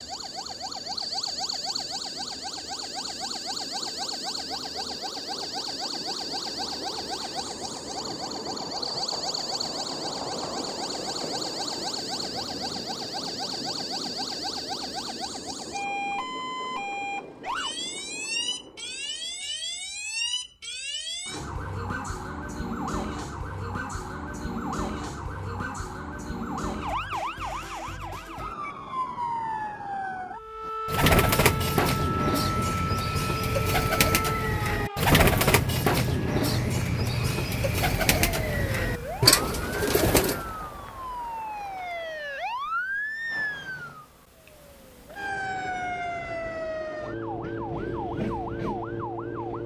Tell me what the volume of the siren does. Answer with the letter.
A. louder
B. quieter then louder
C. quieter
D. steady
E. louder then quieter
D.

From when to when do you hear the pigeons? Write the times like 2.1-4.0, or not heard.
30.9-40.5.